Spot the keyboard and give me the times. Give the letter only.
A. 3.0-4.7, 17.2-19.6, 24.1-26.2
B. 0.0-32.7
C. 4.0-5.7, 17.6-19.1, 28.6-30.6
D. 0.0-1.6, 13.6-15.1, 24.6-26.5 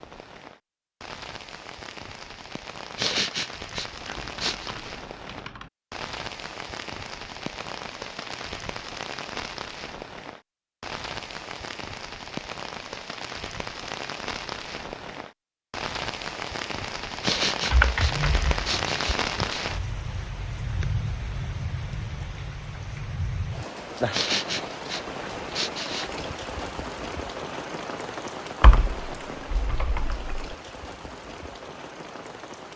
C.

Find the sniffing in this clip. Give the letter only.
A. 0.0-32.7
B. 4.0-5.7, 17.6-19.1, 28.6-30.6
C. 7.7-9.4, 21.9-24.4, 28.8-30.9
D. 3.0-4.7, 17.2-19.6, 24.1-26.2
D.